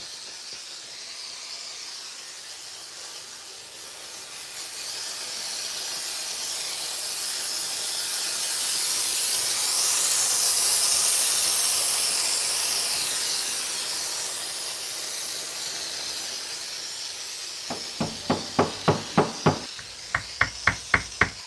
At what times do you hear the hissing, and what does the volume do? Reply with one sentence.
The hissing can be heard from 0.0 to 21.4 s, getting louder then quieter.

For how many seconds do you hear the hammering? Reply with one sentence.
You can hear the hammering for 4 seconds altogether.